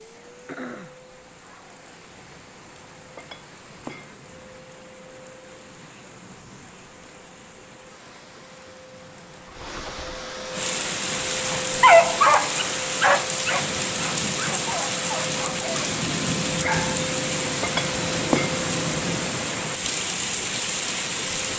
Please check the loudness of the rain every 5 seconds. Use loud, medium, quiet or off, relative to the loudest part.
quiet, quiet, loud, loud, loud.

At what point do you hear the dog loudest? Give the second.
12 s.